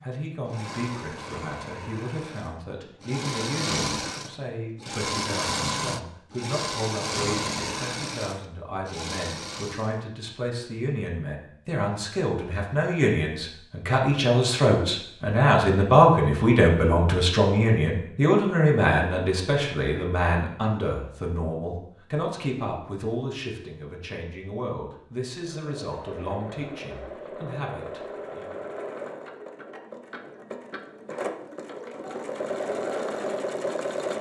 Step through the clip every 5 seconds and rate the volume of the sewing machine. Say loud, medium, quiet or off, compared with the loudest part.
loud, loud, off, off, off, medium, loud.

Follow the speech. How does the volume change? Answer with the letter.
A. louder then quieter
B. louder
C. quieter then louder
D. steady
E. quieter
A.